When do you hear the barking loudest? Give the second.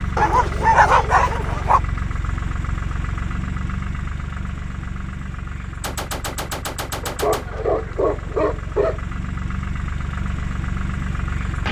1 s.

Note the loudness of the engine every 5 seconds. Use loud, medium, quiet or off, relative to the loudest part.
loud, medium, loud.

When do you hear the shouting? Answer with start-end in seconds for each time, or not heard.
not heard.